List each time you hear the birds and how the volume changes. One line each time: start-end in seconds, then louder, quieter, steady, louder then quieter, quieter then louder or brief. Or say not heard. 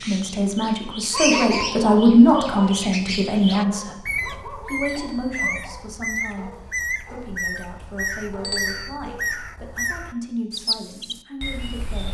0.0-12.0 steady.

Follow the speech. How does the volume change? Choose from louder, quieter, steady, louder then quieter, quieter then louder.
quieter.